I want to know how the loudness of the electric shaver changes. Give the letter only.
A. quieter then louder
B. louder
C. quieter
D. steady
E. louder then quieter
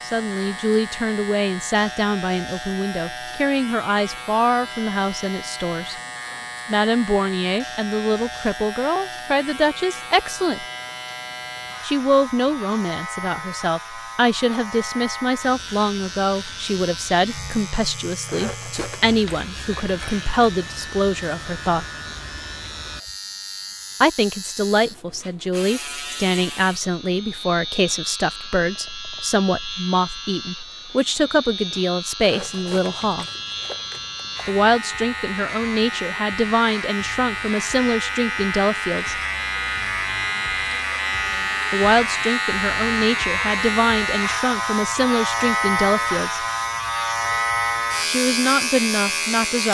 B.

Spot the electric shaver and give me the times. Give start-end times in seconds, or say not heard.
0.0-49.7.